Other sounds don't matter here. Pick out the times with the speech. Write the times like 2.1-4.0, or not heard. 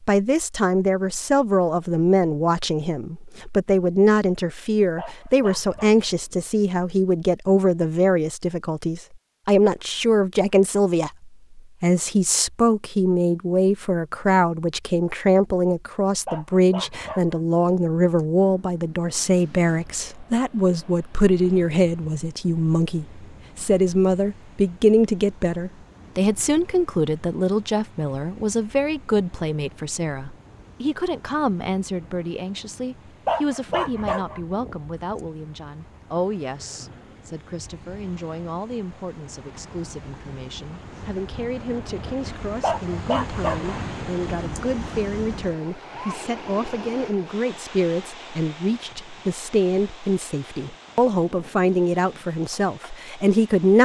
0.0-53.8.